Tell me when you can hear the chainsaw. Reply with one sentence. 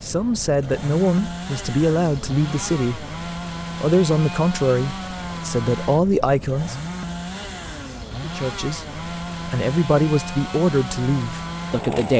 The chainsaw can be heard from 0.0 to 12.1 s.